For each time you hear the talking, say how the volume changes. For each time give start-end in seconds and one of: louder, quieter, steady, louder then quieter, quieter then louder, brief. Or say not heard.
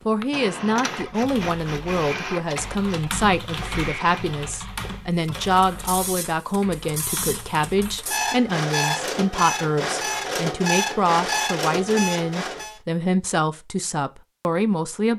0.1-15.1 steady.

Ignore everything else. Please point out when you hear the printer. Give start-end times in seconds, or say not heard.
0.0-12.8.